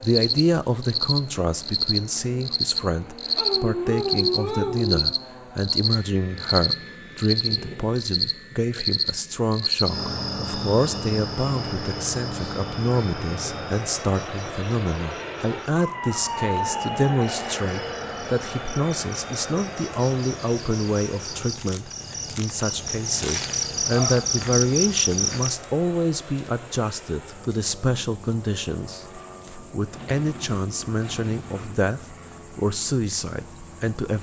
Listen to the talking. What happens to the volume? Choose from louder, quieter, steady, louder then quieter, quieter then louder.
steady.